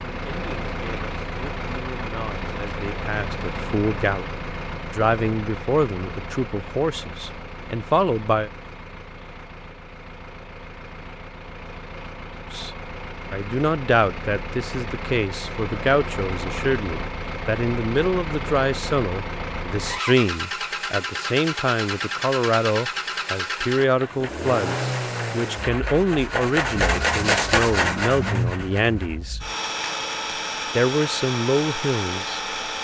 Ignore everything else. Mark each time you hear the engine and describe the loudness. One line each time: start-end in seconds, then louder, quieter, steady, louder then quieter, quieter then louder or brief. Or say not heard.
0.0-32.7 quieter then louder.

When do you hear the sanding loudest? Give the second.
27 s.